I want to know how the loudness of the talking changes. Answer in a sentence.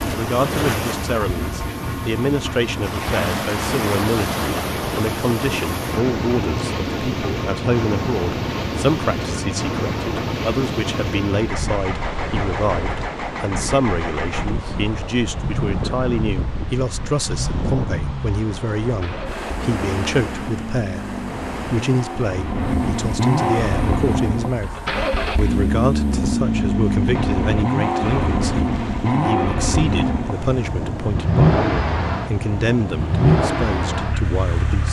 The loudness of the talking stays about the same.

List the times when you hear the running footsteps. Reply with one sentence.
You can't hear the running footsteps here.